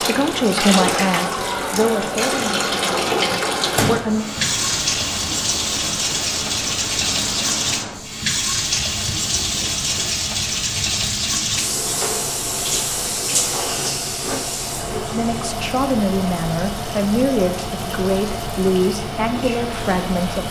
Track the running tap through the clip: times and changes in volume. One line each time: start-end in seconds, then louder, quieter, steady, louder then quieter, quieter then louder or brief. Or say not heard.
0.0-20.4 quieter.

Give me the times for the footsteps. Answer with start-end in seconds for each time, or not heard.
not heard.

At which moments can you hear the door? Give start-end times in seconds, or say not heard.
3.0-4.0.